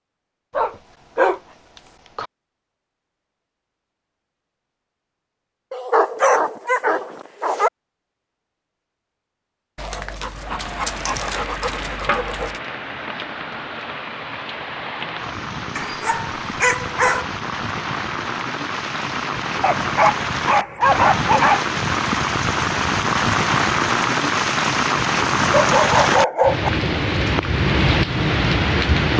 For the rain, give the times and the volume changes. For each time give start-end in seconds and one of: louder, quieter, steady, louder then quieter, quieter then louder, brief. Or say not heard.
10.2-29.1 louder.